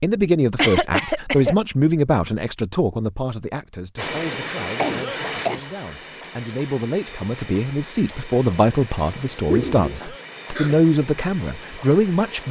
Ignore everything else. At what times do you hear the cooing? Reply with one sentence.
You can hear the cooing from 9.4 to 10.0 s.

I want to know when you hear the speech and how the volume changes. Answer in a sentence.
You can hear the speech from 0.0 to 12.4 s, getting quieter then louder.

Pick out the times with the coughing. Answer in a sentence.
The coughing can be heard from 0.6 to 1.6 s, from 4.8 to 5.7 s and from 10.0 to 10.8 s.